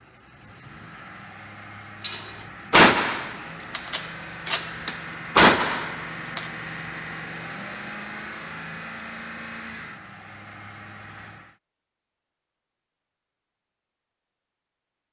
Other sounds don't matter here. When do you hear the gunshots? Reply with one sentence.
You can hear the gunshots from 2.0 to 6.5 s.